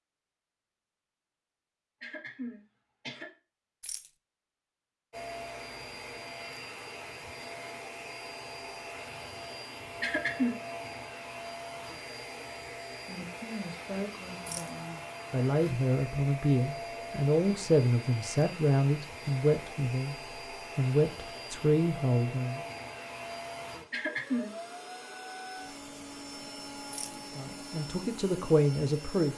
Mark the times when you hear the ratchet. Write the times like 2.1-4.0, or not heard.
not heard.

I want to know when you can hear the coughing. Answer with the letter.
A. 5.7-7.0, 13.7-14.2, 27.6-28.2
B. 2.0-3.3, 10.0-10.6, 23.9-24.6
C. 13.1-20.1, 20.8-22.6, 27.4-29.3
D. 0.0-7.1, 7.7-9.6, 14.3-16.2
B.